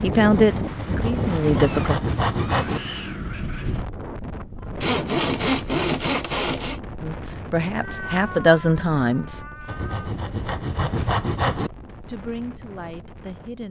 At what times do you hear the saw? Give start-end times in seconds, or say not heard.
0.8-2.8, 4.8-6.8, 9.7-11.7.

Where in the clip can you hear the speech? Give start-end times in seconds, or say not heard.
0.0-1.9, 7.0-9.4, 11.6-13.6.